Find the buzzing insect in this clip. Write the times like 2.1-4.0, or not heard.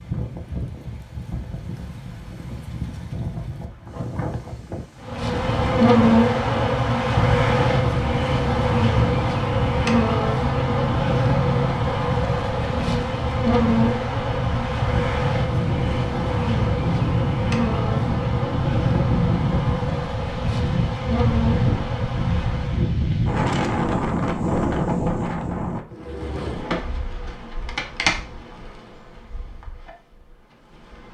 5.0-22.9, 25.9-31.0.